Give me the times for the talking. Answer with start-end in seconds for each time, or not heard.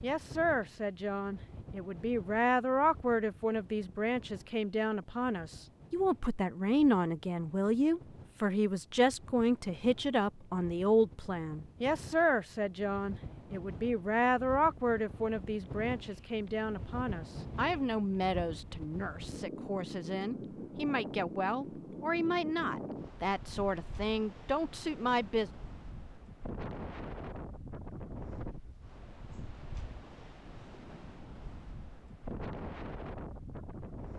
0.0-25.5.